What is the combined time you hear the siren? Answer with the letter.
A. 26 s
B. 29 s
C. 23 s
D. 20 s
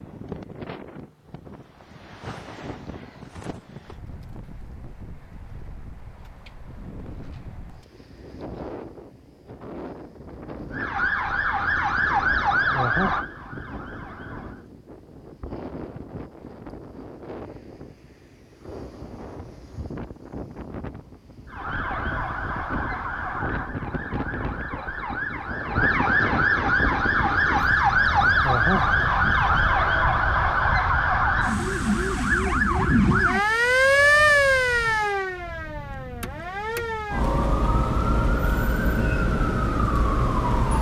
C.